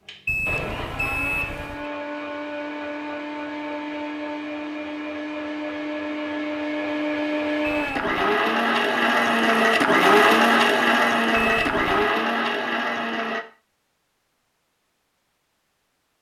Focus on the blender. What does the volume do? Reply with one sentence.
The loudness of the blender goes up.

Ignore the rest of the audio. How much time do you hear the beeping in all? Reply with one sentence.
You can hear the beeping for 3 seconds altogether.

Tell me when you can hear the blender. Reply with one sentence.
The blender can be heard from 0.1 to 13.4 s.